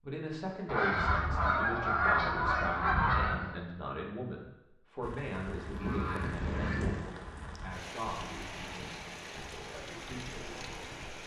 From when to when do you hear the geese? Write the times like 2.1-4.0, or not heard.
0.7-3.5, 5.7-7.0.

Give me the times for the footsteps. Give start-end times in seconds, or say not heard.
not heard.